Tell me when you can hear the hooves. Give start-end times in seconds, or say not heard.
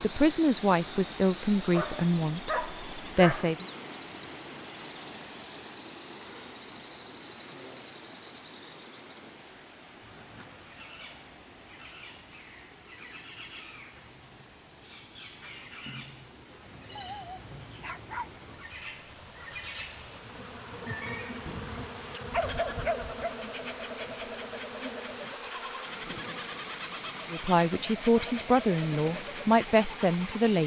not heard.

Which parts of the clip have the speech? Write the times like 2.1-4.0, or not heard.
0.0-3.6, 27.3-30.6.